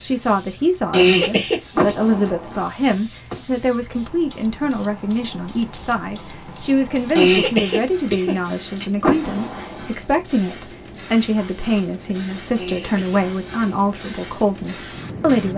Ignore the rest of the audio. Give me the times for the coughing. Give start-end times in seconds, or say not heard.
0.9-1.9, 7.2-8.8, 12.6-13.6.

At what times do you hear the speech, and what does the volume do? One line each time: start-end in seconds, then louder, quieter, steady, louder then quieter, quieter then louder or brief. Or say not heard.
0.0-15.5 steady.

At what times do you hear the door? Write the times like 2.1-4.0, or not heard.
1.8-2.6, 9.0-9.9.